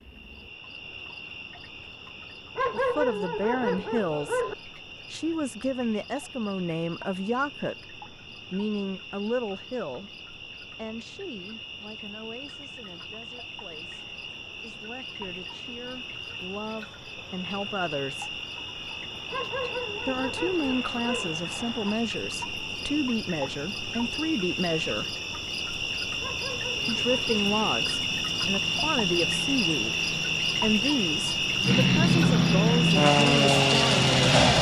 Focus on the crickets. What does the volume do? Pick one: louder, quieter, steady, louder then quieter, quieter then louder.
louder.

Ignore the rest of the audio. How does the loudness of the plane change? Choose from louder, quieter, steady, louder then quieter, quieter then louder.
louder.